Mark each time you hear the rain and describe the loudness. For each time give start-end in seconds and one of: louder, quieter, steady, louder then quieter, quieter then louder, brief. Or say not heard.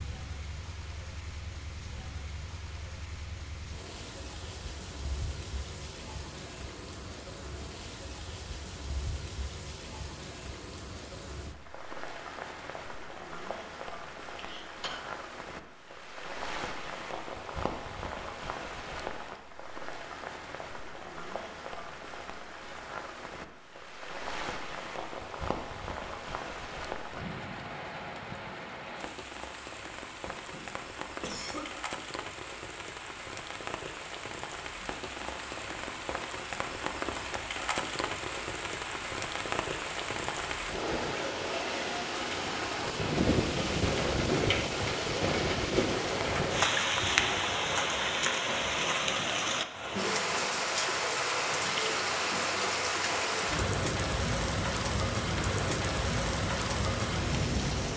0.0-57.9 louder.